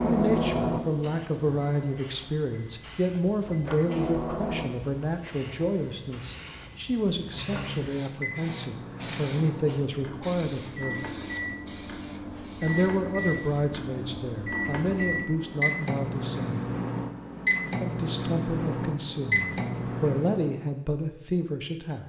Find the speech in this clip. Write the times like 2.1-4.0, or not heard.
0.0-11.1, 12.6-16.6, 17.8-22.0.